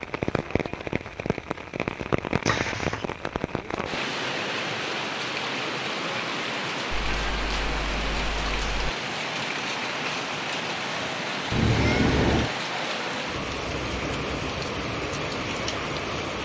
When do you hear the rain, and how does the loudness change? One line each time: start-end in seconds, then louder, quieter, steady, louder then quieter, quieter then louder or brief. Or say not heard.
0.0-16.4 steady.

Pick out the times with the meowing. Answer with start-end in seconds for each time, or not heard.
2.5-3.0, 6.9-8.9, 11.5-12.5.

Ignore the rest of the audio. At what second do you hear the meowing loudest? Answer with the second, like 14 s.
12 s.